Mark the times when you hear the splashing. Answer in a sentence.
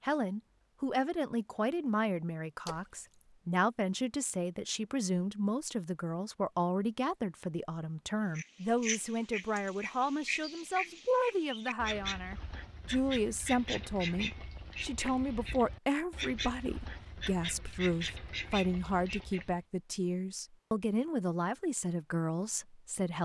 The splashing can be heard from 2.6 to 3.2 s.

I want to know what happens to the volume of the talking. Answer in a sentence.
The loudness of the talking stays about the same.